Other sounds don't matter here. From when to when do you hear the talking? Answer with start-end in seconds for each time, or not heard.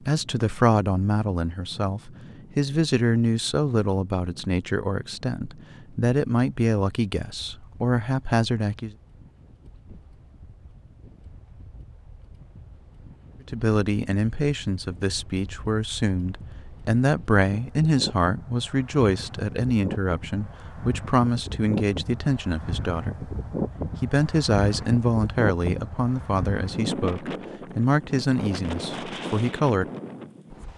0.1-8.9, 13.4-23.3, 24.0-29.9.